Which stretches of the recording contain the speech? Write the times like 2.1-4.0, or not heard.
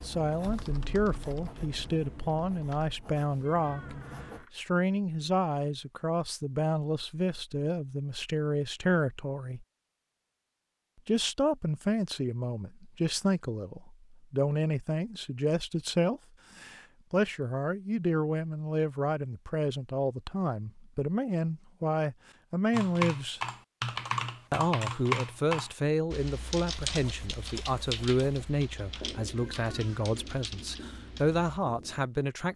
0.0-9.7, 11.1-23.4, 24.5-32.5.